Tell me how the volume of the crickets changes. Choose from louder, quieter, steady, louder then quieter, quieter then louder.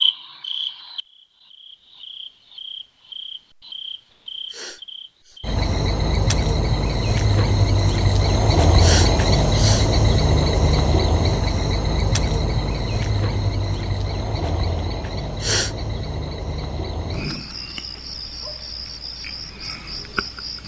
louder then quieter.